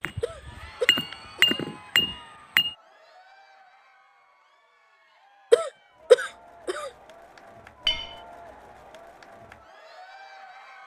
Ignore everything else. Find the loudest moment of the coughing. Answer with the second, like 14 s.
6 s.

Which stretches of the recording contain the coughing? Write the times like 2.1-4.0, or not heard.
0.2-1.6, 5.5-6.9.